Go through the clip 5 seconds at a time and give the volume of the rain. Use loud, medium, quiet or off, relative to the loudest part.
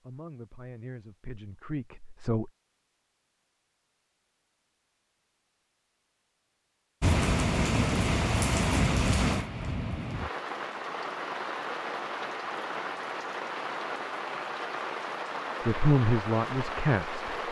off, loud, medium, medium.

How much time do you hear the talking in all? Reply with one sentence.
The talking can be heard for 4 seconds in total.